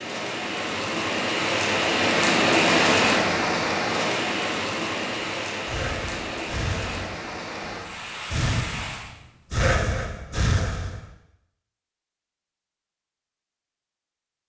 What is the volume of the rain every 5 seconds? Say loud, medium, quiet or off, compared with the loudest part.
loud, medium, off.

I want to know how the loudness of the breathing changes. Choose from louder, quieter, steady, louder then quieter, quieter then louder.
quieter then louder.